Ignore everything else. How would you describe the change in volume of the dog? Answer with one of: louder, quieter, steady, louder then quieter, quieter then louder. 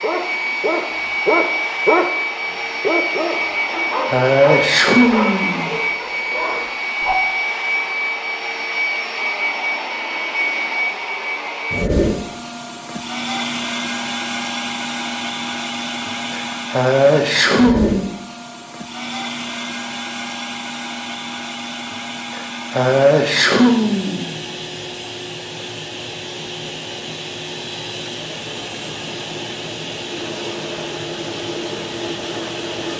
quieter.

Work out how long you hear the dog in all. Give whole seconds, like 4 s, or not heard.
7 s.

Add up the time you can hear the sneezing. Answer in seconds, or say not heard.
6 s.